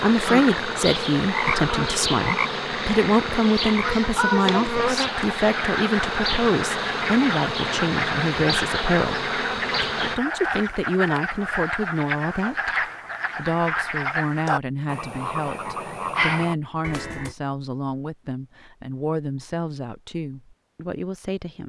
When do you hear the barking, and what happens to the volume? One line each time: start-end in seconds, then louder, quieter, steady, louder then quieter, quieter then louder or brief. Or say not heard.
not heard.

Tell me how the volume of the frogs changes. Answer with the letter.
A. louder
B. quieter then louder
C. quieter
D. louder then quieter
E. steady
E.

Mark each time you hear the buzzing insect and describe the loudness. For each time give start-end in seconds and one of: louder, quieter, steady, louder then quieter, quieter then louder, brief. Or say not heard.
0.0-10.2 steady.